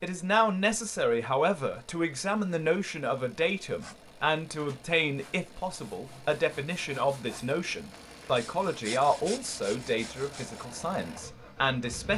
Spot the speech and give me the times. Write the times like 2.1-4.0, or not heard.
0.0-12.1.